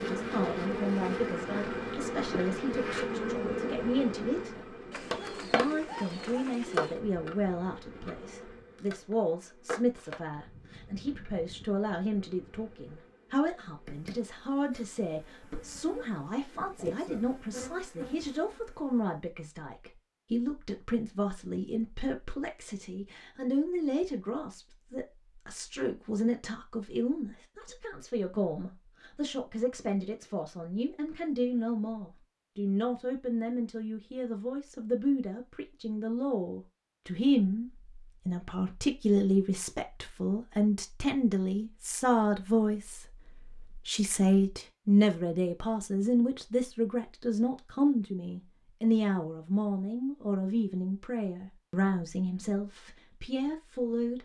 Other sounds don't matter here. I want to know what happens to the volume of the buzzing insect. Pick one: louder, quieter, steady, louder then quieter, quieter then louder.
quieter then louder.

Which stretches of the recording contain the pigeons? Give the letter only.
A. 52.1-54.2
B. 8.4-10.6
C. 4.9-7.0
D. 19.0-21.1
C.